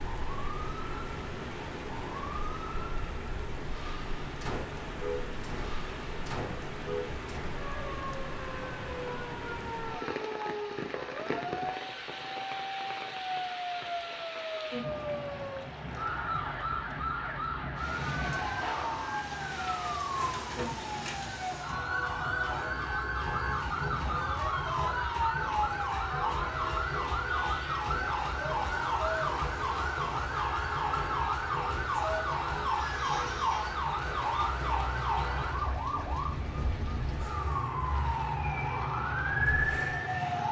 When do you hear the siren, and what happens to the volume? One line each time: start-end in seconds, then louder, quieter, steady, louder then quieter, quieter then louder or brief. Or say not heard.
0.0-40.4 louder.